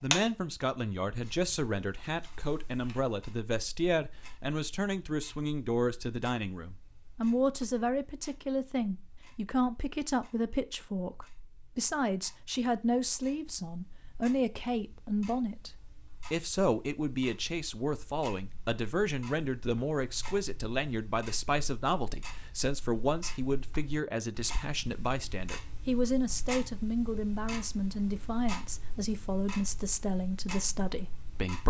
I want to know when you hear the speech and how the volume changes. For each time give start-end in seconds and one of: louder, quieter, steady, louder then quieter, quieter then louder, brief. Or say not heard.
0.0-31.6 steady.